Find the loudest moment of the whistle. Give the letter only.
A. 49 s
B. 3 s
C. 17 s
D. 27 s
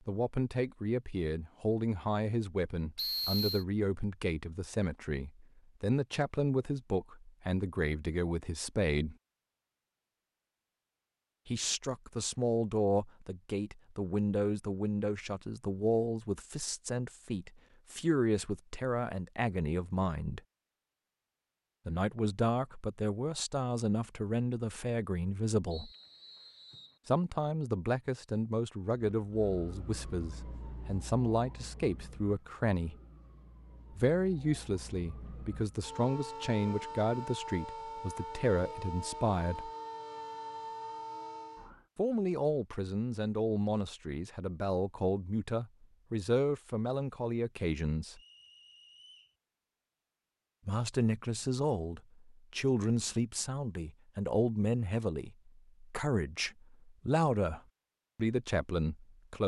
B.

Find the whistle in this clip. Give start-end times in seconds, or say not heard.
3.0-3.6, 25.7-26.9, 48.1-49.4.